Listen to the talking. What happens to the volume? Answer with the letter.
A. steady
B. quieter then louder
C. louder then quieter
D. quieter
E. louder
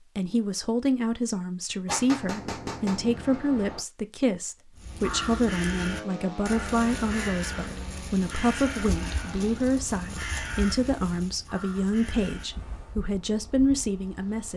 A.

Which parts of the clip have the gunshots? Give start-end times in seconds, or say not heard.
1.9-3.8.